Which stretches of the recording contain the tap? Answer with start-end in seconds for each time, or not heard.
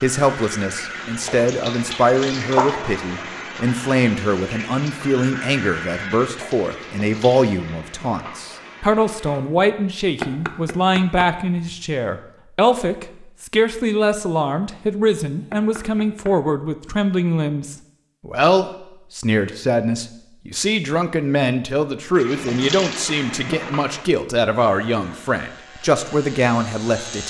0.0-9.4, 22.1-24.1.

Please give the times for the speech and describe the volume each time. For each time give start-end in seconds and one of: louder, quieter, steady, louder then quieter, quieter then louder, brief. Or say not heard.
0.0-27.2 steady.